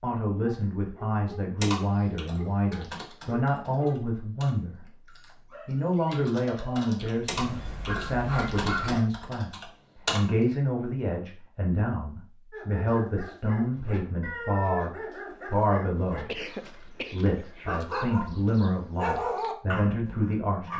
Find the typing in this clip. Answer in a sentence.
The typing can be heard from 1.6 to 10.2 s.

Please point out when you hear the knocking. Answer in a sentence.
You can't hear the knocking here.